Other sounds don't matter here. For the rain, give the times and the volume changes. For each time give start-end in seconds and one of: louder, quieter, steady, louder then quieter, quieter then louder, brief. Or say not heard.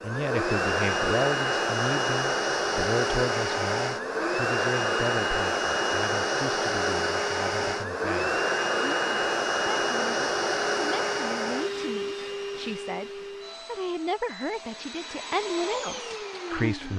not heard.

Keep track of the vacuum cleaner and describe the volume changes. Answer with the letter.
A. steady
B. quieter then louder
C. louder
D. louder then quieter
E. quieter
E.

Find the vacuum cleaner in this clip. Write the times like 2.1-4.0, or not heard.
0.0-16.9.